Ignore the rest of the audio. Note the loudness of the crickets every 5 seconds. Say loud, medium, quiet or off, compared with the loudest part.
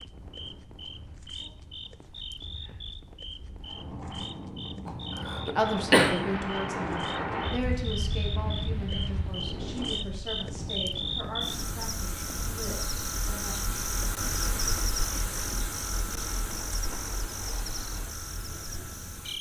medium, medium, loud, loud.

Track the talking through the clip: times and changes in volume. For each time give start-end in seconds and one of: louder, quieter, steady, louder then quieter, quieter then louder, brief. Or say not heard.
5.5-13.6 quieter.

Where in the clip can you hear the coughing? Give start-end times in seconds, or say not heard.
4.8-6.2.